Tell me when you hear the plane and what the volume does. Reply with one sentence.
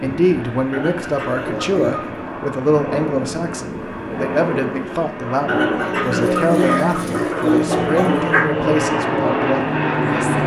The plane can be heard from 0.0 to 10.4 s, getting louder.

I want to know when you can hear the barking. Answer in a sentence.
You can hear the barking from 6.2 to 8.4 s.